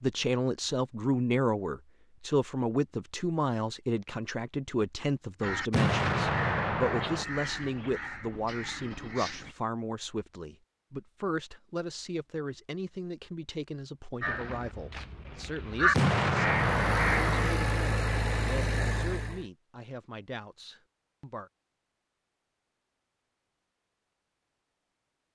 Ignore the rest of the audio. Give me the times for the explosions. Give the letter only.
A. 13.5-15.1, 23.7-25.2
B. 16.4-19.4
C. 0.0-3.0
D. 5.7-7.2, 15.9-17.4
D.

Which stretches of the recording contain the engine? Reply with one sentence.
The engine can be heard from 16.4 to 19.4 s.